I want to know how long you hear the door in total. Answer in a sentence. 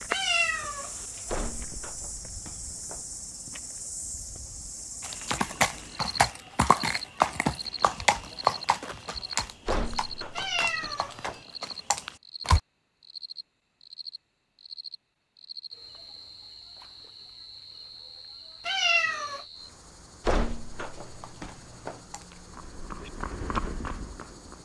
The door can be heard for 5 seconds in total.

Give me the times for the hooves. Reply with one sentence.
The hooves can be heard from 5.0 to 12.6 s and from 21.0 to 24.6 s.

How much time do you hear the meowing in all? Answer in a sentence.
The meowing can be heard for 3 seconds in total.